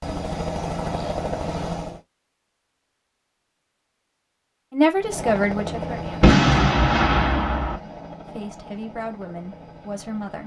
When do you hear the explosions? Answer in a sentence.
The explosions can be heard from 6.2 to 7.8 s.